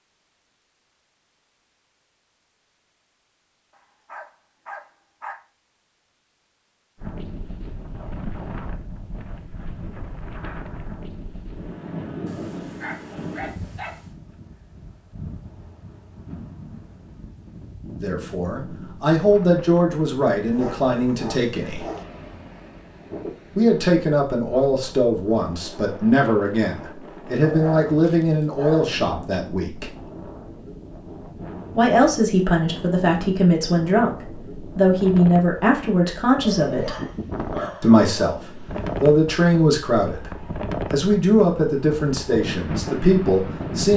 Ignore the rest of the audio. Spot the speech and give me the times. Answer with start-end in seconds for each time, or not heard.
18.0-21.9, 23.6-29.9, 31.8-37.0, 37.8-38.4, 39.0-40.3, 40.9-43.9.